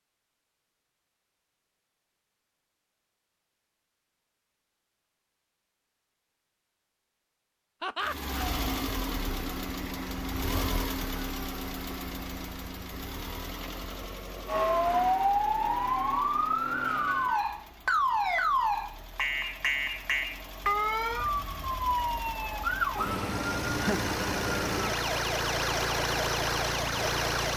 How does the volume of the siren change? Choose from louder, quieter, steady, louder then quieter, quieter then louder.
quieter.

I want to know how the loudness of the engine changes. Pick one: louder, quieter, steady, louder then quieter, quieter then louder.
quieter then louder.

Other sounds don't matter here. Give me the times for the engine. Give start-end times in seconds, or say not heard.
8.0-27.5.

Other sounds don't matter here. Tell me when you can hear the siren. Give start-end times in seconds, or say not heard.
14.4-27.5.